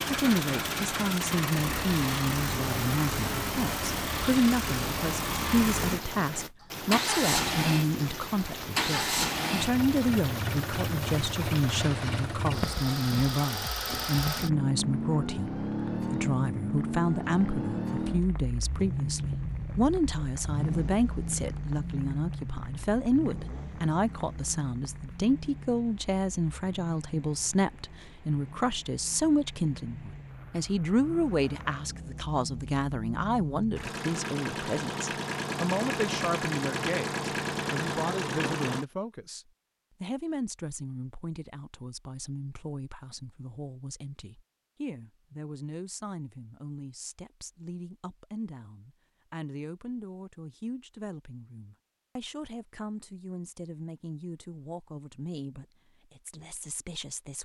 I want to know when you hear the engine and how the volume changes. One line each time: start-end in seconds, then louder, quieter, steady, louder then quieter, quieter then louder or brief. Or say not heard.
0.0-38.9 quieter then louder.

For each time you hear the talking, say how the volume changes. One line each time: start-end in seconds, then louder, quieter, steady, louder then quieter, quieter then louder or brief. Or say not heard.
0.1-57.3 quieter.